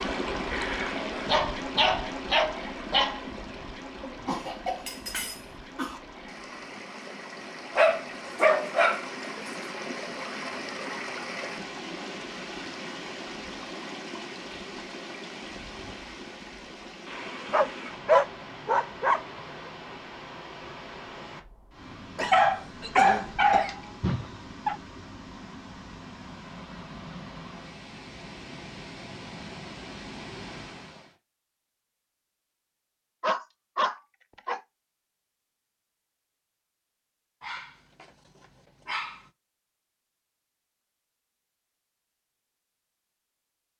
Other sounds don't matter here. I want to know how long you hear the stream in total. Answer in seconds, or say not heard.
31 s.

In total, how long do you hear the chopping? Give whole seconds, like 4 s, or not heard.
not heard.